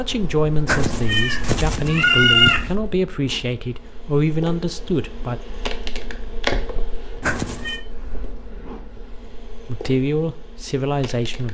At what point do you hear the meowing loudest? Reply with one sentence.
The volume of the meowing peaks at 2 seconds.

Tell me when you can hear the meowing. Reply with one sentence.
The meowing can be heard from 0.7 to 2.8 s and from 7.2 to 7.8 s.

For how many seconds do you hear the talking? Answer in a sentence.
You can hear the talking for 7 seconds altogether.